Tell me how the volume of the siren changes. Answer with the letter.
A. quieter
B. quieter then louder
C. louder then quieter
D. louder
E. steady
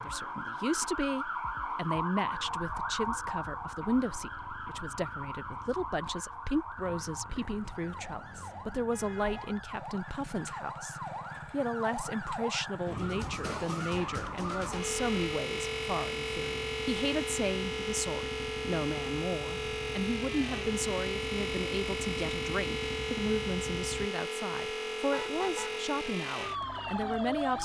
B.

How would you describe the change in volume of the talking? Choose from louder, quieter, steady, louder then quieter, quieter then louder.
steady.